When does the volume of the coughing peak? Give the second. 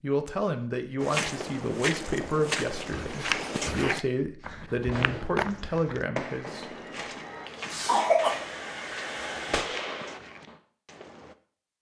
8 s.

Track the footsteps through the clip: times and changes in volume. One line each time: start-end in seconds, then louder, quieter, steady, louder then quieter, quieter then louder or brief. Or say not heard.
1.0-11.3 quieter.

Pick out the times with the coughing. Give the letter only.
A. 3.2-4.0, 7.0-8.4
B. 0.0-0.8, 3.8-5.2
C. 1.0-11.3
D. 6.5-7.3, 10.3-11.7
A.